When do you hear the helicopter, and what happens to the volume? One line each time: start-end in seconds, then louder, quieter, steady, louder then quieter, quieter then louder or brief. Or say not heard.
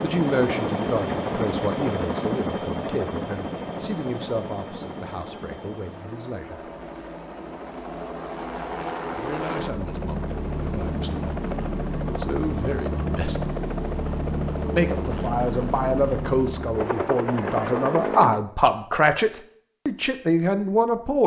0.0-18.4 quieter then louder.